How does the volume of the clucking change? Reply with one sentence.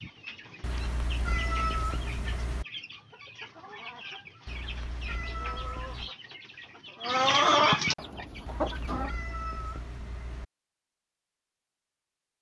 The volume of the clucking goes up.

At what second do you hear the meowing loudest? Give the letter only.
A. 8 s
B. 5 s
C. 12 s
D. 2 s
D.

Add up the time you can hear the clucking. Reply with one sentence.
The clucking can be heard for 9 seconds in total.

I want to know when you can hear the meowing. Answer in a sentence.
You can hear the meowing from 0.6 to 2.6 s, from 4.5 to 6.1 s and from 8.4 to 10.4 s.